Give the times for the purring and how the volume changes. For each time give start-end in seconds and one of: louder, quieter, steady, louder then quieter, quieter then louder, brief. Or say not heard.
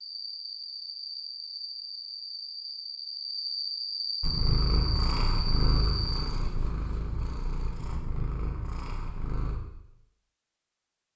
4.2-9.6 quieter.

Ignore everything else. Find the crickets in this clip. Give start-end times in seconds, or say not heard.
0.0-6.3.